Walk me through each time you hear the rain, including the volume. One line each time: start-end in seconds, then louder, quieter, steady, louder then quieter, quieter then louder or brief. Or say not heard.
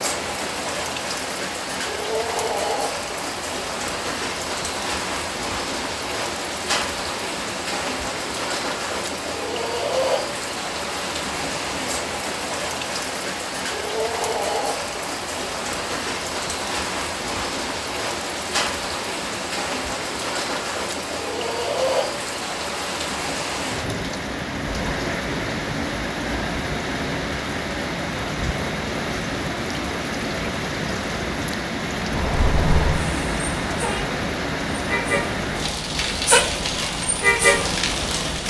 0.0-38.4 steady.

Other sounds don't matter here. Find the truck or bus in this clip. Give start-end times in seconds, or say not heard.
32.1-38.4.